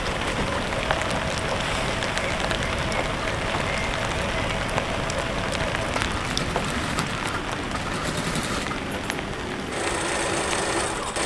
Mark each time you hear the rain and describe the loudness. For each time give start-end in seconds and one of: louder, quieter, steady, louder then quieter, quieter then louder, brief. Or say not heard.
0.0-11.2 quieter.